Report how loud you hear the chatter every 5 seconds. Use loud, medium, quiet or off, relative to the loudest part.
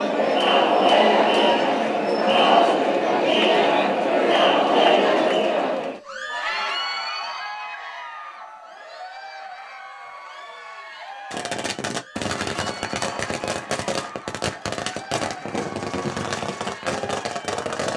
loud, medium, quiet, quiet.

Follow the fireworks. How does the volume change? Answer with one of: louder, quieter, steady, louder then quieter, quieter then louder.
steady.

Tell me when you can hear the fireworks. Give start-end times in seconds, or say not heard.
11.3-17.9.